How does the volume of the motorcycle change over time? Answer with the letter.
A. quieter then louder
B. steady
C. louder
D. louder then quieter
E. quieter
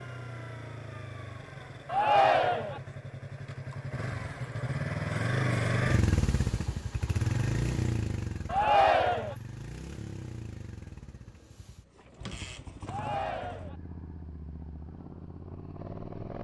D.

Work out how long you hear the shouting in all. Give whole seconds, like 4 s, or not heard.
3 s.